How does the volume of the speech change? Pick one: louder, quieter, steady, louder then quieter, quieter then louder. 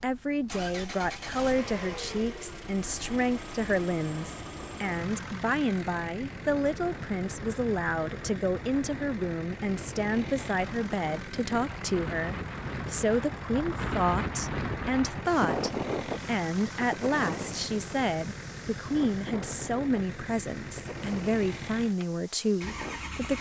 steady.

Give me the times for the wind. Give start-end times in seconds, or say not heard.
0.1-23.3.